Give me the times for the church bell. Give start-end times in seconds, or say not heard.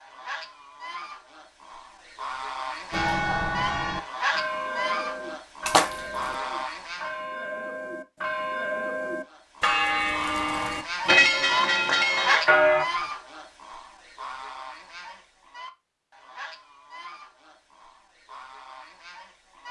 2.9-12.8.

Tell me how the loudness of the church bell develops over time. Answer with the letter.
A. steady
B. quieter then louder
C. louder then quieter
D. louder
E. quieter
B.